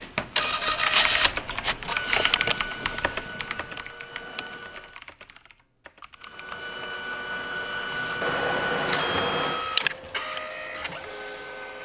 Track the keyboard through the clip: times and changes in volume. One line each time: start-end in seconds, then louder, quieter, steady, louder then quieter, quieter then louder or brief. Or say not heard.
0.7-6.6 quieter.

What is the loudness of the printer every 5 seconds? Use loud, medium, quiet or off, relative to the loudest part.
loud, loud, medium.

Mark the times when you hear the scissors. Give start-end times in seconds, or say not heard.
1.0-1.8, 8.2-9.7.